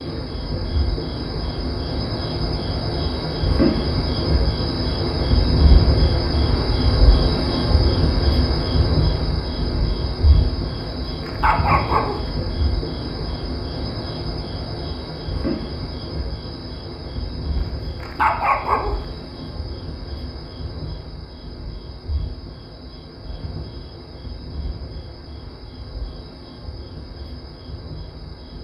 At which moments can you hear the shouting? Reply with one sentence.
You can't hear the shouting here.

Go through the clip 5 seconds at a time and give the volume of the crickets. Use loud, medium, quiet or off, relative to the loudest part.
loud, loud, medium, medium, quiet, quiet.